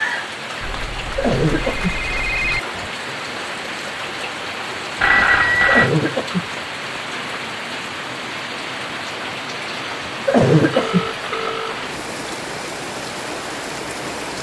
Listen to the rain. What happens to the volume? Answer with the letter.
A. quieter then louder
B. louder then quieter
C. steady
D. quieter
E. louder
C.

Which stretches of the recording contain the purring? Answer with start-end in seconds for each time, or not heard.
not heard.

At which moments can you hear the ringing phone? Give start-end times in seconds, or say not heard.
0.6-2.6, 5.0-5.9, 10.7-11.8.